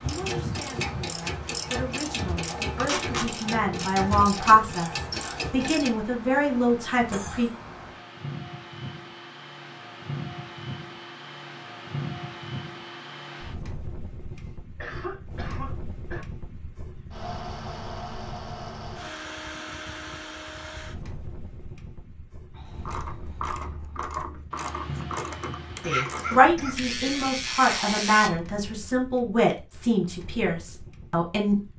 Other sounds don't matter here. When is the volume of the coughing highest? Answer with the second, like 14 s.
26 s.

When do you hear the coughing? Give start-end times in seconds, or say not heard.
7.0-7.5, 14.3-16.2, 25.8-27.3.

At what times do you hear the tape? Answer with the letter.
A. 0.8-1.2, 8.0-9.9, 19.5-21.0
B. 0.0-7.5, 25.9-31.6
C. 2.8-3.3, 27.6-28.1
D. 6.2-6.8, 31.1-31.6
C.